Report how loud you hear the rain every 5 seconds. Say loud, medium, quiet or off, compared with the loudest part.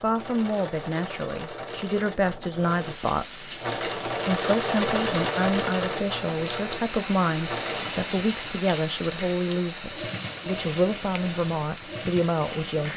medium, loud, medium.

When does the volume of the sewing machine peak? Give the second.
5 s.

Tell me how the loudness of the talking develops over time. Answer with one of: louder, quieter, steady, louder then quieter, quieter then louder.
steady.